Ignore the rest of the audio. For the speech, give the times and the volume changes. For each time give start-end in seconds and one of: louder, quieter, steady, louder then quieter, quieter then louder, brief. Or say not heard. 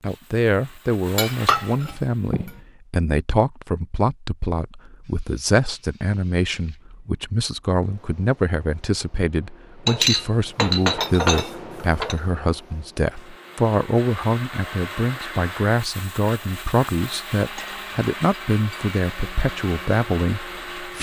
0.0-20.9 steady.